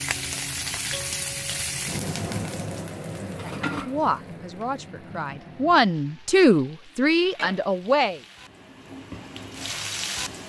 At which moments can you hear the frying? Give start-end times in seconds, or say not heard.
0.0-10.4.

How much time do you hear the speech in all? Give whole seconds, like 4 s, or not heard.
5 s.